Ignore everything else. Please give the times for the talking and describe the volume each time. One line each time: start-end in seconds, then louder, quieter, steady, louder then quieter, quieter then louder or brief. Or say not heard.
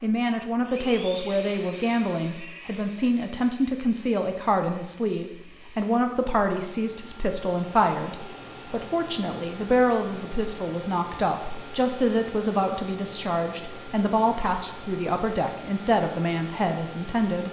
0.0-17.4 steady.